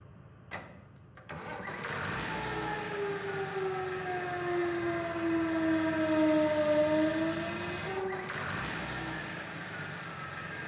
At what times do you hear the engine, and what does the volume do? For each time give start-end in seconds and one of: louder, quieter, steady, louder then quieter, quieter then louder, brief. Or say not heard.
0.0-10.6 steady.